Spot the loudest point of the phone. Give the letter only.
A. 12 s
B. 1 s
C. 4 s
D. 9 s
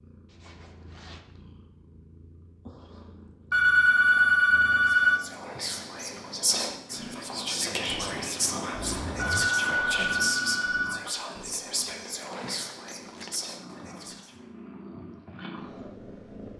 C.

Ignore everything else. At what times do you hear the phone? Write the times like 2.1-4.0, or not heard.
3.5-5.2, 9.3-11.0.